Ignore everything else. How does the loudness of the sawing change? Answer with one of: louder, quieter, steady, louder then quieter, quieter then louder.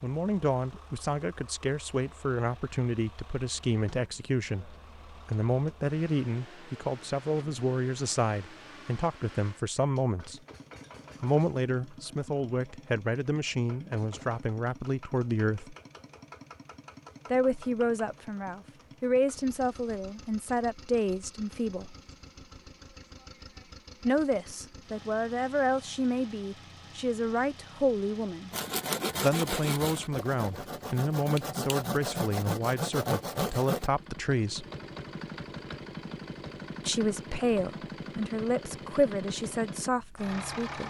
quieter then louder.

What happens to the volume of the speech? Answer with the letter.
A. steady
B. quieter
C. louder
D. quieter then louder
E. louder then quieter
A.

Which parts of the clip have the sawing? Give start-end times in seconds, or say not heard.
28.5-33.9.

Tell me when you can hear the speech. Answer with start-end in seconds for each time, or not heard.
0.0-10.4, 11.2-15.8, 17.3-21.9, 24.1-28.5, 29.2-34.6, 36.9-40.8.